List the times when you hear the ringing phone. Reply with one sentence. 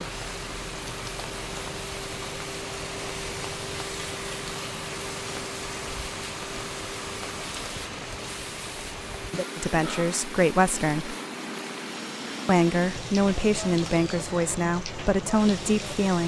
You can't hear the ringing phone here.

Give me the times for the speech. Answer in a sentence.
You can hear the speech from 9.6 to 11.2 s and from 12.4 to 16.2 s.